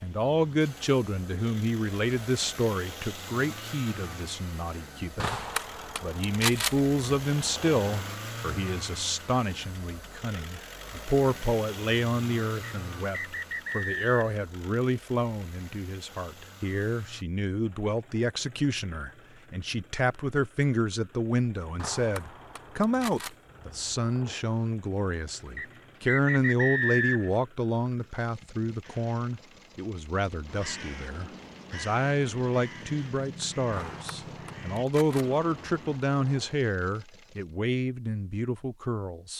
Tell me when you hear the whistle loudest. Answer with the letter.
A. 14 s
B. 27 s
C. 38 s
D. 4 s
B.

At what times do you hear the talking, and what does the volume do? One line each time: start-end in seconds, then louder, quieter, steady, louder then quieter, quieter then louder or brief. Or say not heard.
0.0-5.4 quieter
6.0-39.3 steady.